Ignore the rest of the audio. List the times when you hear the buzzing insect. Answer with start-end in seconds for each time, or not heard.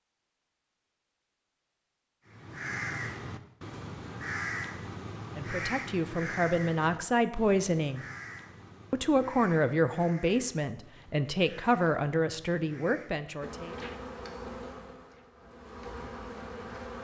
13.4-17.0.